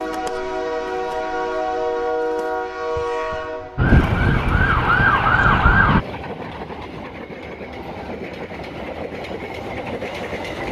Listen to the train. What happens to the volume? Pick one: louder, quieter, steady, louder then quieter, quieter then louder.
quieter.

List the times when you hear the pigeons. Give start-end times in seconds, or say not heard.
not heard.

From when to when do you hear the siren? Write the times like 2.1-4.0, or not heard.
3.8-6.0.